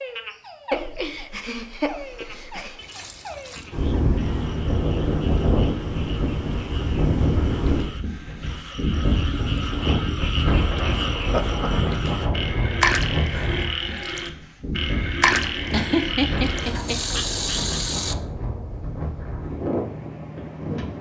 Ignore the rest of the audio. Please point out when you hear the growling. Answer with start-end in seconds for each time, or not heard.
not heard.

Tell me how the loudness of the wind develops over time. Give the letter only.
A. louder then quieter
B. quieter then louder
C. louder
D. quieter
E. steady
D.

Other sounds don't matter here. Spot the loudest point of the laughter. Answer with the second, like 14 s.
16 s.